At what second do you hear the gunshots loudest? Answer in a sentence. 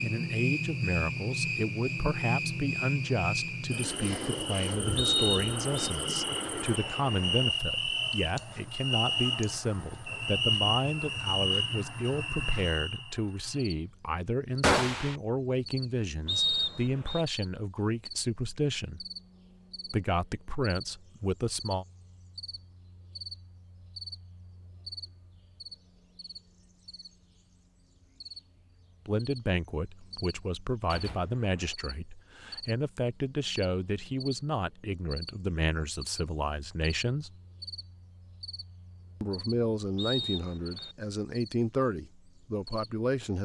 The loudest moment of the gunshots is at 15 seconds.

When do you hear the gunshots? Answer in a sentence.
The gunshots can be heard from 5.5 to 7.5 s, from 14.6 to 15.2 s and from 30.9 to 31.8 s.